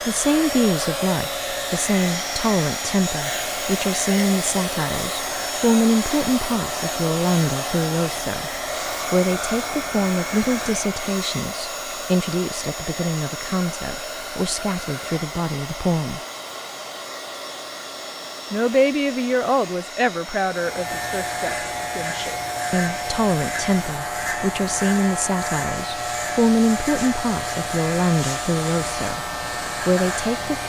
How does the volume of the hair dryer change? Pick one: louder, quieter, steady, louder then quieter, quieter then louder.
quieter.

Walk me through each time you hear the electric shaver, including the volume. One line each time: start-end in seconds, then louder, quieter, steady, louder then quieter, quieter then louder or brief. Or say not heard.
0.0-11.1 steady
20.4-30.6 steady.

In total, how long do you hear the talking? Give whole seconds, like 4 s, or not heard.
28 s.